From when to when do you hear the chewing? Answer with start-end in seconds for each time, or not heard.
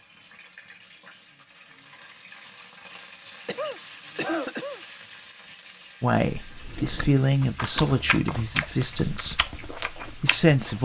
6.5-10.8.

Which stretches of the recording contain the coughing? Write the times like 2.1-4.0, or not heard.
3.5-4.8.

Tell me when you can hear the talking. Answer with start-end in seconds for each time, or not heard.
6.0-10.8.